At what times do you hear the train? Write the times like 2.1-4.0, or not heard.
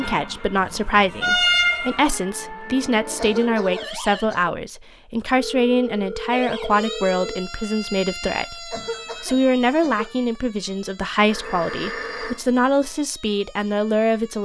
0.0-3.3.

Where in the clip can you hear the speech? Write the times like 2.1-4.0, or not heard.
0.0-14.3.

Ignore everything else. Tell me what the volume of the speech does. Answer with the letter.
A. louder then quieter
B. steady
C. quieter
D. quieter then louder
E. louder
B.